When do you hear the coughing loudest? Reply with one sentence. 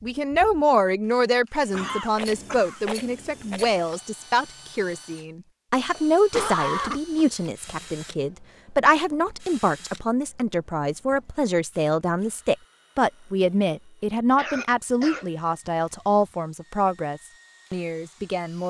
The volume of the coughing peaks at 7 seconds.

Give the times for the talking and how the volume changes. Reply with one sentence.
You can hear the talking from 0.0 to 18.6 s, at a steady volume.